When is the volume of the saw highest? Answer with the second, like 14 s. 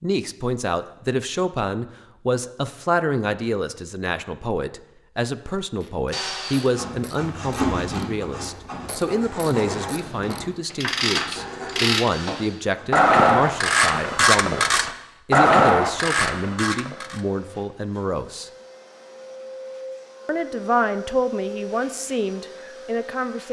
8 s.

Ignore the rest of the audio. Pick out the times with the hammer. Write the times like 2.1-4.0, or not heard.
not heard.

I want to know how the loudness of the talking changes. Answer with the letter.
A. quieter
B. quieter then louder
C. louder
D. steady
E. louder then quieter
D.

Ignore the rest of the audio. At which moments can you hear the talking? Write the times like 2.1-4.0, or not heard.
0.0-18.5, 20.2-23.4.